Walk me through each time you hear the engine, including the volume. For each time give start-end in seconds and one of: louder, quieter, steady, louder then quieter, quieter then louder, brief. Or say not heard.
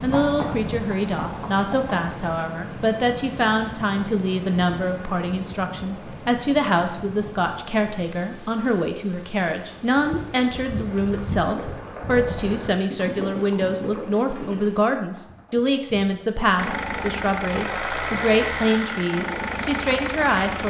16.6-20.6 steady.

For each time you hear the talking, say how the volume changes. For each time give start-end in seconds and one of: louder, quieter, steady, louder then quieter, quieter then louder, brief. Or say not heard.
0.0-20.6 steady.